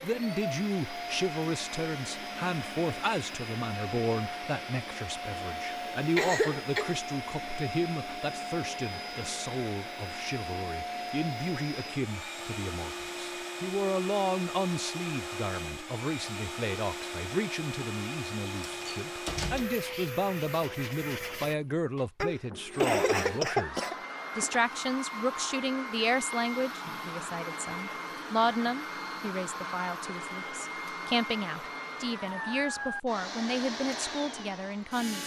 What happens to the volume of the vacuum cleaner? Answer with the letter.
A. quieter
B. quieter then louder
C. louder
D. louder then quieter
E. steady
E.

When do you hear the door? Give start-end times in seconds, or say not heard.
18.6-19.8.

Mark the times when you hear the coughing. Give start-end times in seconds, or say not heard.
6.2-7.0, 22.2-23.9.